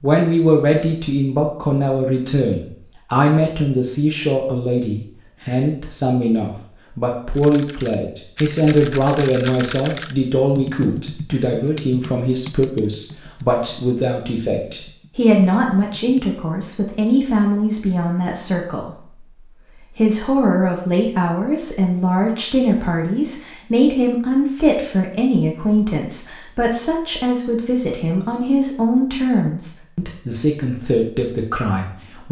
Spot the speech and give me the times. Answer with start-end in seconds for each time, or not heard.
0.0-19.1, 19.8-32.2.